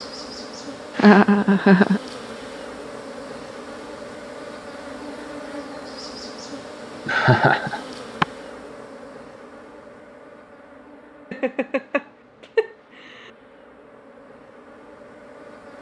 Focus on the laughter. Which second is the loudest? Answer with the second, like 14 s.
1 s.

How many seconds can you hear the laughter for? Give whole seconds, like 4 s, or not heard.
4 s.